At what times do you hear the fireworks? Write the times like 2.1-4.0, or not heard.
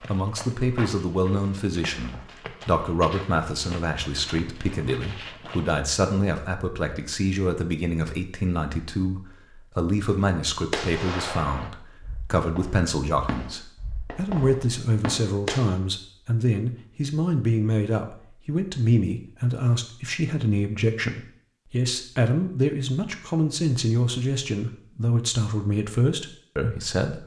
10.7-15.8.